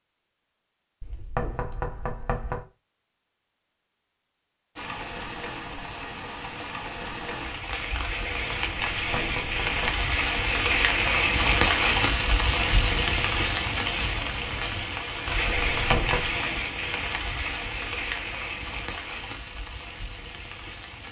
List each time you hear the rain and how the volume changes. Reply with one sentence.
The rain can be heard from 4.8 to 21.0 s, getting louder then quieter.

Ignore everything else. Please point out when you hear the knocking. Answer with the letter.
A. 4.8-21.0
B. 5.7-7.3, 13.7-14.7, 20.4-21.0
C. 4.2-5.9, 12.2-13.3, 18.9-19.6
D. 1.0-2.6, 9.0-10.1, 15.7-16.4
D.